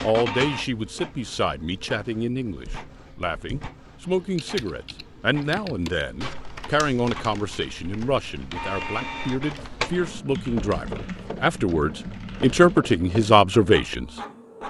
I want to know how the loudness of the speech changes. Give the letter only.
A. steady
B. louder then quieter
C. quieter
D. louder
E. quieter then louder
D.